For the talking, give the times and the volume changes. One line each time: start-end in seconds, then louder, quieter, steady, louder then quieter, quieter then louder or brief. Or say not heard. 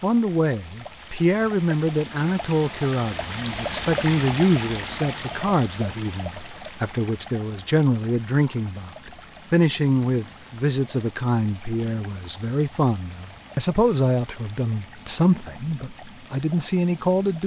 0.0-17.4 steady.